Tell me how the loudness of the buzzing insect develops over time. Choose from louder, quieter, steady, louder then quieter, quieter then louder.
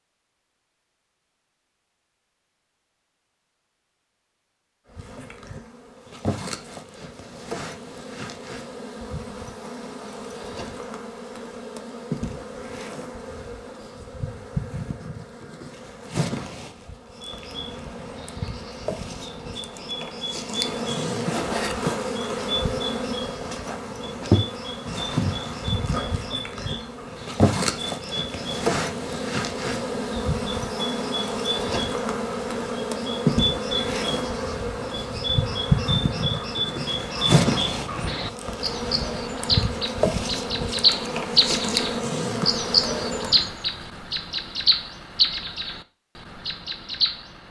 louder.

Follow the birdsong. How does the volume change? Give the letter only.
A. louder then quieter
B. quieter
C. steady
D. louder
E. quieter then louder
D.